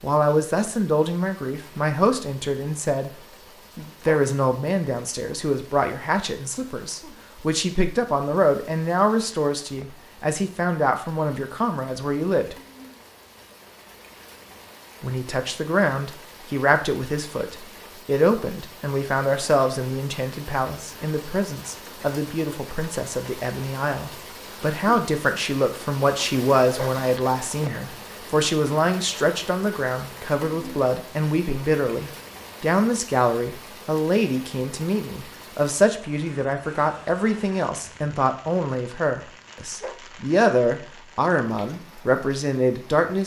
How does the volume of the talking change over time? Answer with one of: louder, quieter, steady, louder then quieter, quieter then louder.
steady.